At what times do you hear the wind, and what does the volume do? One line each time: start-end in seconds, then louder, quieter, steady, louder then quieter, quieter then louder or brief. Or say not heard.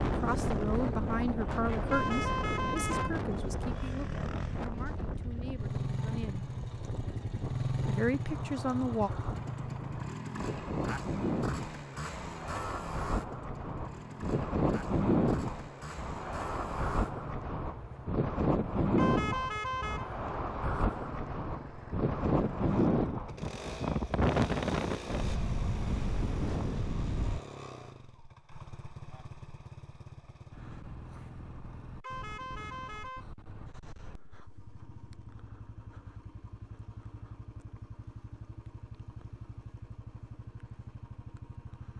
0.0-27.4 quieter then louder.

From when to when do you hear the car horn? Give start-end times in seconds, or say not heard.
1.9-4.0, 18.9-20.1, 32.0-33.2.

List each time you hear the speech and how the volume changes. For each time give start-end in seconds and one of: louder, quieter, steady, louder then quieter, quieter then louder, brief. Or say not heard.
0.0-6.5 quieter
7.8-9.1 brief.